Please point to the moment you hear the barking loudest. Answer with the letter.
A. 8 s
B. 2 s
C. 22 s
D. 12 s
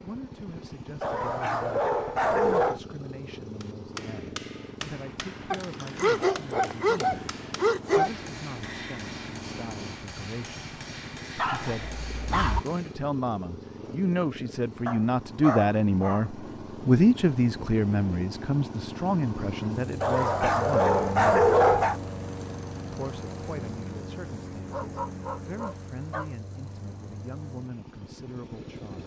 C.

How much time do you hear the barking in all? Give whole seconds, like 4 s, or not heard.
11 s.